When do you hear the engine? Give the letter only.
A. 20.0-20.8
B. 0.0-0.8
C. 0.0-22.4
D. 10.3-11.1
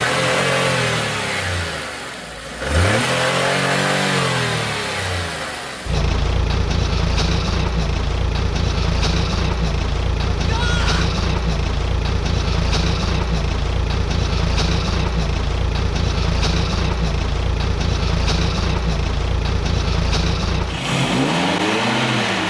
C.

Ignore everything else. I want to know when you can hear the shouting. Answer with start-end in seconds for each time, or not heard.
10.3-11.1.